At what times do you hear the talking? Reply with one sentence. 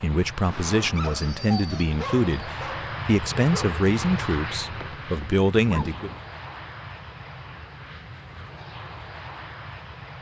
You can hear the talking from 0.0 to 6.1 s.